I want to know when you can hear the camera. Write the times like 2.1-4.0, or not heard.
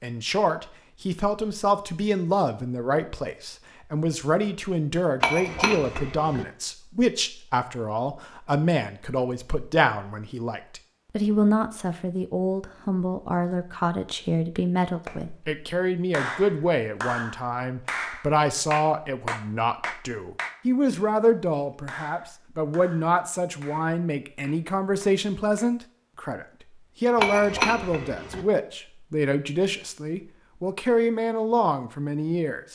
not heard.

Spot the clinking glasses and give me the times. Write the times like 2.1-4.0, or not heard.
5.2-6.5, 27.1-28.4.